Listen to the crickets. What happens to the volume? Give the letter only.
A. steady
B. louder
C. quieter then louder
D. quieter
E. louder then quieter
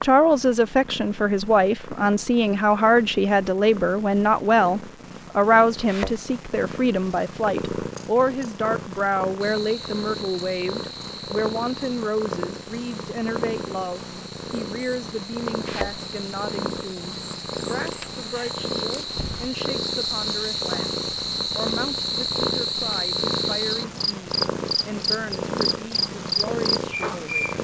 B.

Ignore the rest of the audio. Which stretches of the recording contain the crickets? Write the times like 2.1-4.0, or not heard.
9.4-27.5.